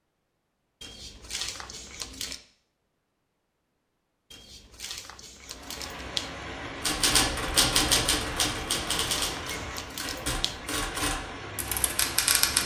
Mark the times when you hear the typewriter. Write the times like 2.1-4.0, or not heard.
6.8-12.6.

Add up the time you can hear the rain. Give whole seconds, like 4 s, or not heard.
7 s.